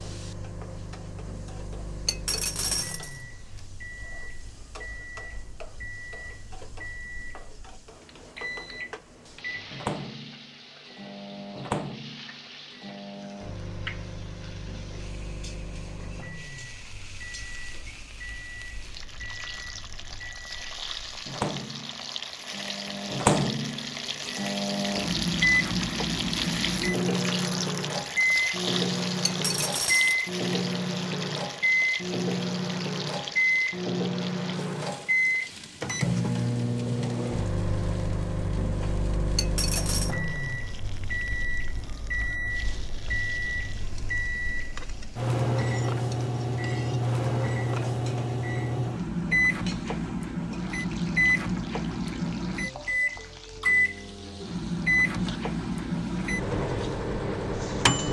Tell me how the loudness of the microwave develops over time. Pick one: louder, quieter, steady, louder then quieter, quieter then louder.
louder.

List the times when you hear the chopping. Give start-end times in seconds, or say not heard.
not heard.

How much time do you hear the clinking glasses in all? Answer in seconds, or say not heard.
3 s.